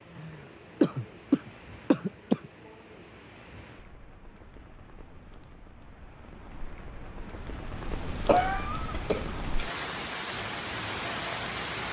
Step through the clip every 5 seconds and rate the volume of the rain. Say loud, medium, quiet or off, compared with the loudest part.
quiet, medium, loud.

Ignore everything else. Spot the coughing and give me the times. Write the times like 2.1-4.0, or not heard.
0.1-2.5, 8.2-9.4.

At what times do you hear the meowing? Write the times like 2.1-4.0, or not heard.
not heard.